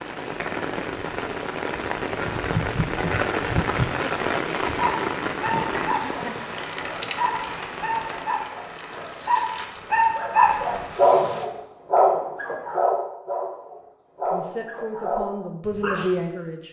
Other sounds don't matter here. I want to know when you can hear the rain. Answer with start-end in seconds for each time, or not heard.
0.0-11.5.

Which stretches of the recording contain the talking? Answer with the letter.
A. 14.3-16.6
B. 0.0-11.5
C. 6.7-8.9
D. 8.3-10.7
A.